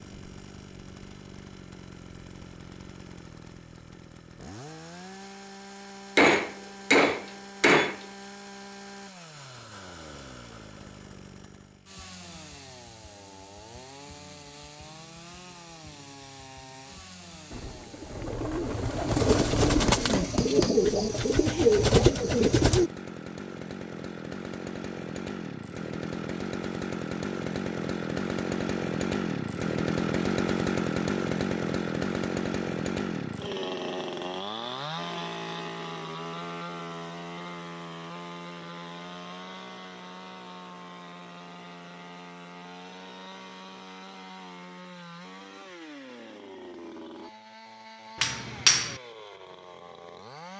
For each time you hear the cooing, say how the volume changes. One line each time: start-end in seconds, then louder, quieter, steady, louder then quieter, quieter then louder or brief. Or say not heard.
17.5-22.9 louder.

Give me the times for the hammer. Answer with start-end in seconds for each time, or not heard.
6.2-8.1, 19.1-20.7, 48.2-49.0.